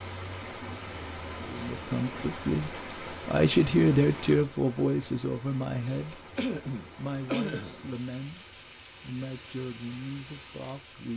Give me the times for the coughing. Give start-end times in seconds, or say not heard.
5.8-7.8.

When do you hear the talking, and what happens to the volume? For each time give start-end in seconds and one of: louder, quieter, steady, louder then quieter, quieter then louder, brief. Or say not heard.
1.4-6.3 louder then quieter
7.0-11.1 steady.